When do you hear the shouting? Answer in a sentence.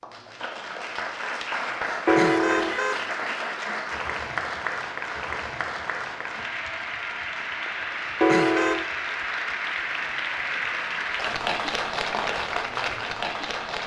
You can't hear the shouting here.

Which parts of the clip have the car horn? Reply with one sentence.
You can hear the car horn from 2.0 to 3.1 s and from 8.2 to 8.9 s.